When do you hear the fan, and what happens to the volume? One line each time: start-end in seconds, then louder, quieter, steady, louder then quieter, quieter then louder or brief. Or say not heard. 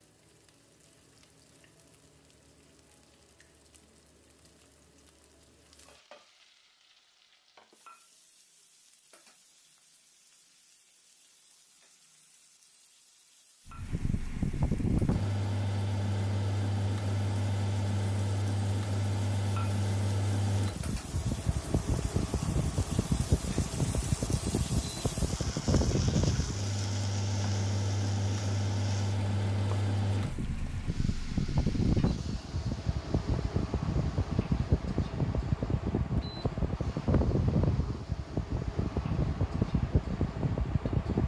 13.7-41.2 steady.